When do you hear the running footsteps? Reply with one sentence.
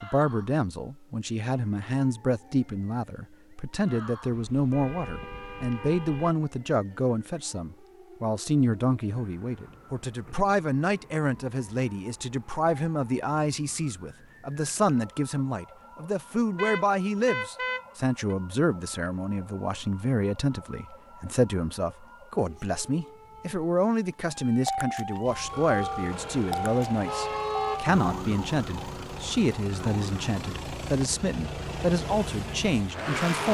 You can't hear the running footsteps here.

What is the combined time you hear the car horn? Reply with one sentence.
The car horn can be heard for 6 seconds in total.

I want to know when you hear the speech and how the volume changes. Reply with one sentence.
The speech can be heard from 0.0 to 33.4 s, at a steady volume.